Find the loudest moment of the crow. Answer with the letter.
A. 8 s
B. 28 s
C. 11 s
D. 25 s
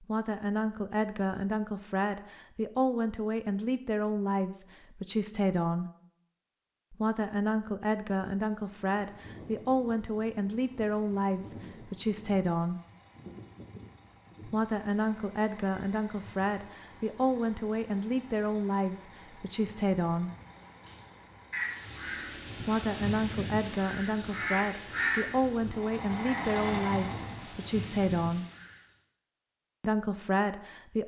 D.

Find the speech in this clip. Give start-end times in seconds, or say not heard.
0.0-5.9, 6.9-12.8, 14.4-20.3, 22.6-28.4, 29.8-31.0.